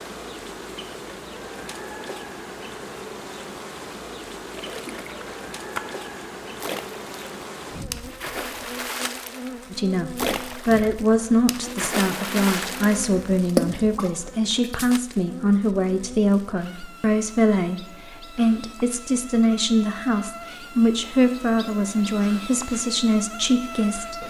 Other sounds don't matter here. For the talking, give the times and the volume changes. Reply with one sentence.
You can hear the talking from 9.7 to 24.2 s, at a steady volume.